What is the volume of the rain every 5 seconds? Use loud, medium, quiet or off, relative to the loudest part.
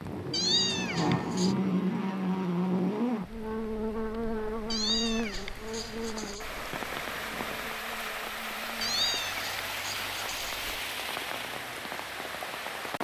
quiet, loud, loud.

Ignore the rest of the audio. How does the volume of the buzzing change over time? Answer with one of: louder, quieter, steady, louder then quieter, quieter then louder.
quieter.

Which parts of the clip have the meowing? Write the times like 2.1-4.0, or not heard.
0.3-1.6, 4.7-6.7, 8.8-10.8.